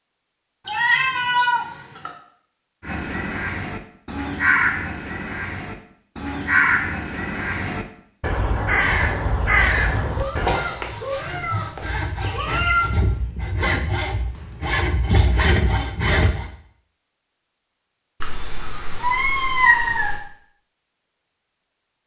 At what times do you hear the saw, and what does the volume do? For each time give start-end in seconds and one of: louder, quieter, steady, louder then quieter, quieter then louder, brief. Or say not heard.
10.3-16.5 louder.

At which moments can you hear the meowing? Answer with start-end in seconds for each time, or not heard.
0.7-2.1, 10.2-12.9, 18.2-20.2.